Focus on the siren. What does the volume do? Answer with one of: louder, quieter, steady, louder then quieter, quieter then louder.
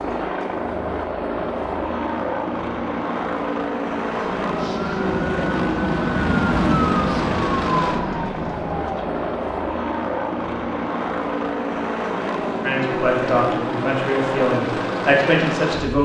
louder then quieter.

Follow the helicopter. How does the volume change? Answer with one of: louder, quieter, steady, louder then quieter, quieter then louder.
steady.